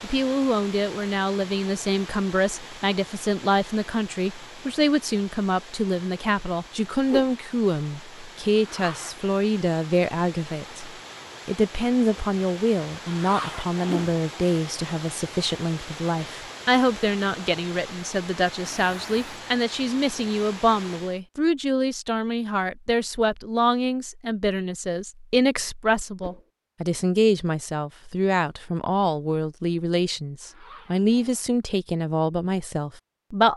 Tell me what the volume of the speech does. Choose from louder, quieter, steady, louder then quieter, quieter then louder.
steady.